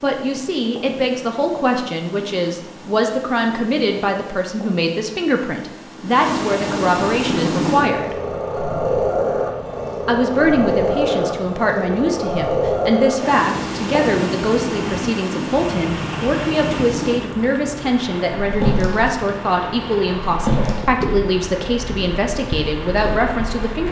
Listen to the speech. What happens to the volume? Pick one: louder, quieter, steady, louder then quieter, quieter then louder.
steady.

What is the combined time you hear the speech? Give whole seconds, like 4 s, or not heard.
22 s.